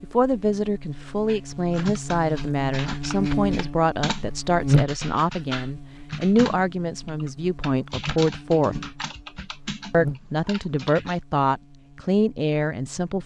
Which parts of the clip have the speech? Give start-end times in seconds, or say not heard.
0.0-8.8, 9.9-13.2.